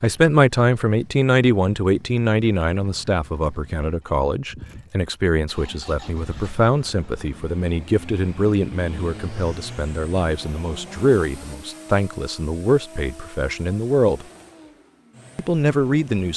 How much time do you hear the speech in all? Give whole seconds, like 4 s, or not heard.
15 s.